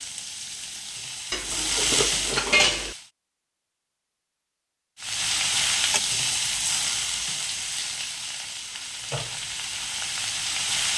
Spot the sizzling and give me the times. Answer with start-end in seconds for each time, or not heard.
0.0-3.1, 5.0-10.9.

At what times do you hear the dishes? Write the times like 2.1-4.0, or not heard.
1.3-3.0.